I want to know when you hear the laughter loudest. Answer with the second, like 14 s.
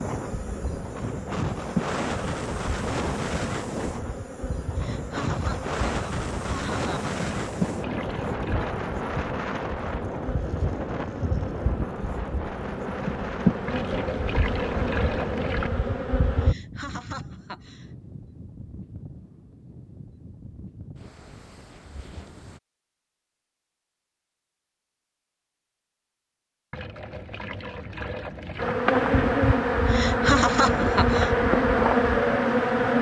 30 s.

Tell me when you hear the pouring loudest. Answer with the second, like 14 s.
15 s.